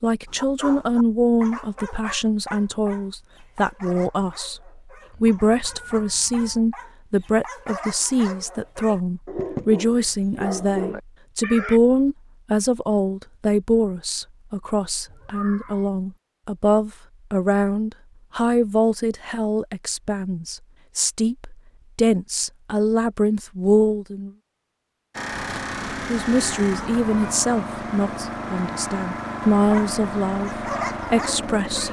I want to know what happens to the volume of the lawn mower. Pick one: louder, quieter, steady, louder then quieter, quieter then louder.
steady.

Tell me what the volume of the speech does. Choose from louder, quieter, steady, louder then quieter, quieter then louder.
steady.